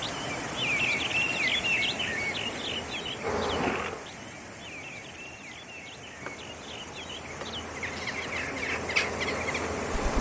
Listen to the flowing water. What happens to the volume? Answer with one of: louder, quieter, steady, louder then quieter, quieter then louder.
quieter then louder.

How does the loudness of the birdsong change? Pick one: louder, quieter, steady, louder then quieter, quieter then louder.
quieter then louder.